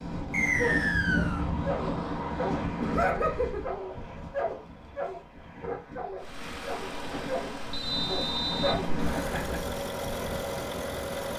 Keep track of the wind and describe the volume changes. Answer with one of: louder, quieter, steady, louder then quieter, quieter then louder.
quieter then louder.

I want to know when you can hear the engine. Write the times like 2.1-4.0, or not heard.
6.2-11.3.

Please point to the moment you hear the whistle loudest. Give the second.
1 s.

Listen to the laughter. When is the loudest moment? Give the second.
3 s.